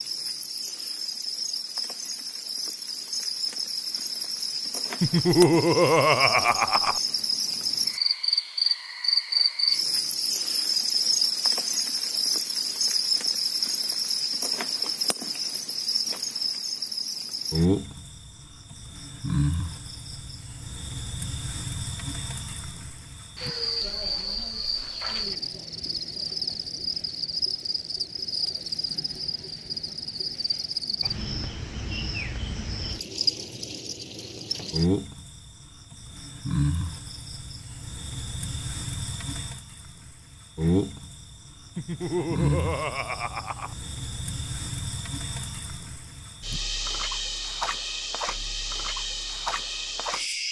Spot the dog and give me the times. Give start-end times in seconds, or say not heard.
not heard.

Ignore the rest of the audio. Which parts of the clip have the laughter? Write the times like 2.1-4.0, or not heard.
5.0-7.0, 41.8-43.8.